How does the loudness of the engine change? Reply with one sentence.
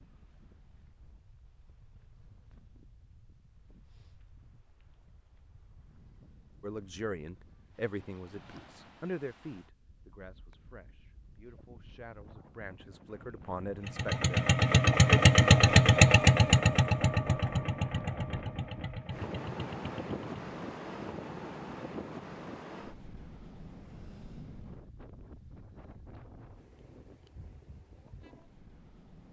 The loudness of the engine goes down.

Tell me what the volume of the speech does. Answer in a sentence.
The volume of the speech goes down, then up.